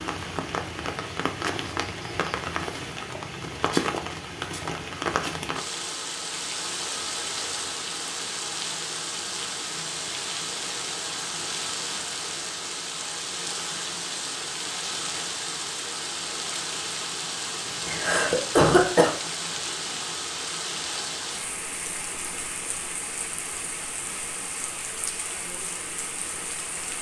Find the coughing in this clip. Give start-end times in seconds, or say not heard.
17.9-19.1.